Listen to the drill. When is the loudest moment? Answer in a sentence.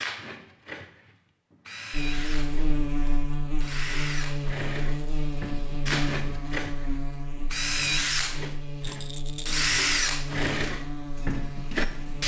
The volume of the drill peaks at 10 seconds.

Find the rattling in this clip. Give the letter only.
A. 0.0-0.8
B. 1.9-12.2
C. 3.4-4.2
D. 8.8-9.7
D.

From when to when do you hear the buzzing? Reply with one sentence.
The buzzing can be heard from 1.9 to 12.2 s.